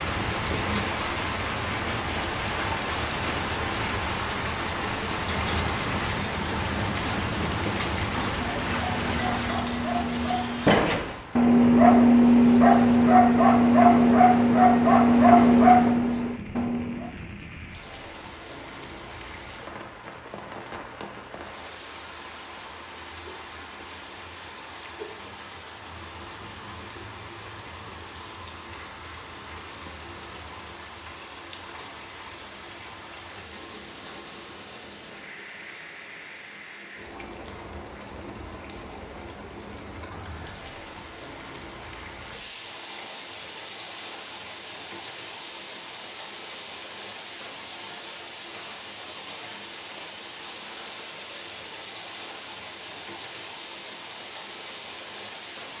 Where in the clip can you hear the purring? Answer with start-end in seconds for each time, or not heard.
not heard.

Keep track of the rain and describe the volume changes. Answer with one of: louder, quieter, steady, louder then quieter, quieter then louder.
quieter.